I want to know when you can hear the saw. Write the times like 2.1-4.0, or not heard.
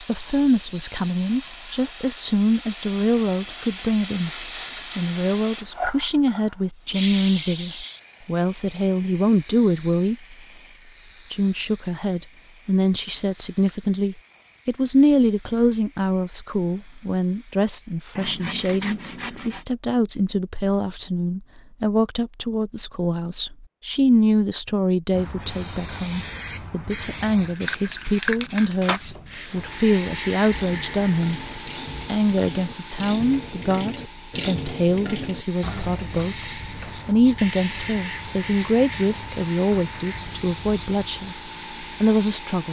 18.1-19.6.